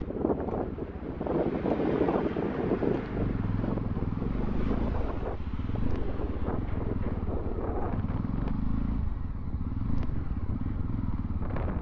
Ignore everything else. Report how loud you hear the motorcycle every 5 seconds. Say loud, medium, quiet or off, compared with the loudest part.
loud, loud, medium.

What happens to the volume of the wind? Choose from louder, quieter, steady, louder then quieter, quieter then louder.
quieter.